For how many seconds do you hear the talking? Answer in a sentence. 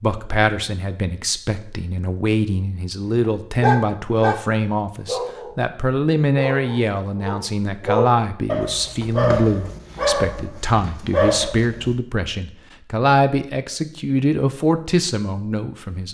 You can hear the talking for 16 seconds altogether.